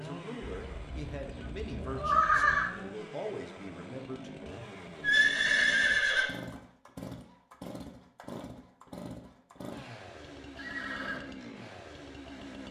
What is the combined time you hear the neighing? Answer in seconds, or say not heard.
4 s.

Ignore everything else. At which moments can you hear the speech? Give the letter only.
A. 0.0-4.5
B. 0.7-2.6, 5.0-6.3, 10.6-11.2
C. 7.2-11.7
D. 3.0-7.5
A.